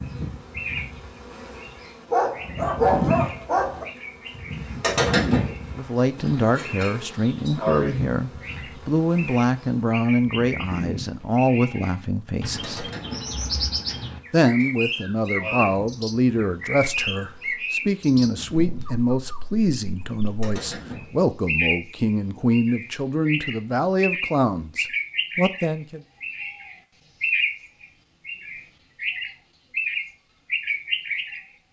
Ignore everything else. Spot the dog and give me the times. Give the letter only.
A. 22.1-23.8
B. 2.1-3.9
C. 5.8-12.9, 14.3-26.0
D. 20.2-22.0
B.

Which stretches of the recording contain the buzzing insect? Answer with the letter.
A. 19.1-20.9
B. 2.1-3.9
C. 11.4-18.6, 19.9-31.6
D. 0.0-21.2
D.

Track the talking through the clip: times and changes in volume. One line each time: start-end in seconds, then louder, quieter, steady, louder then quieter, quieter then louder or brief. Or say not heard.
5.8-12.9 steady
14.3-26.0 steady.